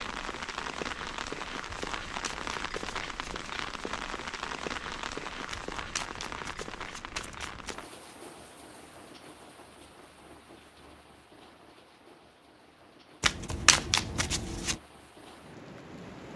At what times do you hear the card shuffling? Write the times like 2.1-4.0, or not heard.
1.8-3.4, 5.5-7.8, 13.2-14.8.